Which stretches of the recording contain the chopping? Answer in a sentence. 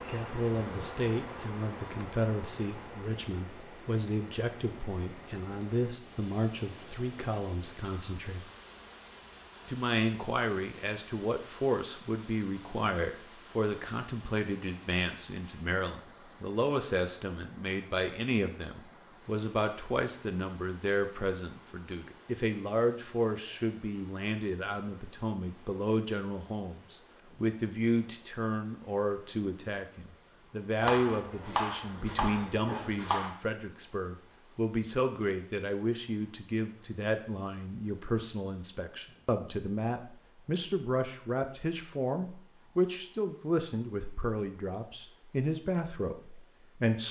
You can hear the chopping from 30.8 to 33.3 s.